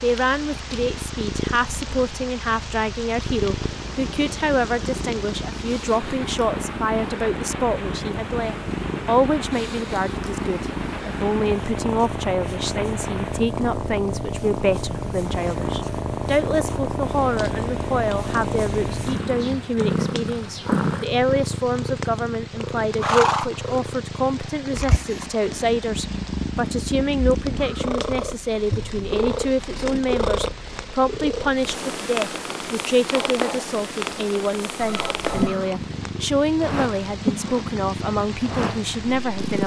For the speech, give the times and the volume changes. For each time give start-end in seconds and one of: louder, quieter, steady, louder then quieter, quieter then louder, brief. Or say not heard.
0.0-39.6 steady.